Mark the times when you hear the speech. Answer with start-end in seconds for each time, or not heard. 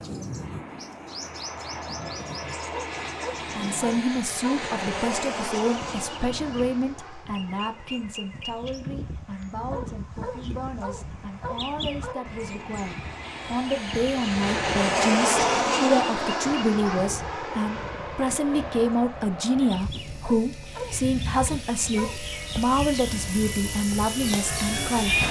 3.5-25.2.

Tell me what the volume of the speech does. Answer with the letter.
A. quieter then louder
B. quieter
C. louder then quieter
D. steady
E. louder
A.